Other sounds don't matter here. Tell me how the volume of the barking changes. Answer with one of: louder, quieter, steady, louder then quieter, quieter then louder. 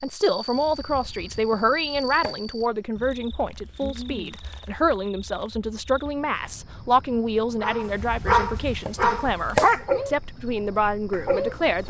quieter then louder.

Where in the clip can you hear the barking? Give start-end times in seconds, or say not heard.
7.6-11.8.